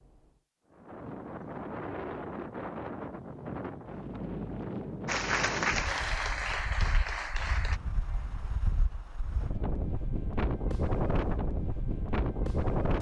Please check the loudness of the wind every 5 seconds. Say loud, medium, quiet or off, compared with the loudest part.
medium, medium, loud.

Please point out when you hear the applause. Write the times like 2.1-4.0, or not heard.
5.0-7.8.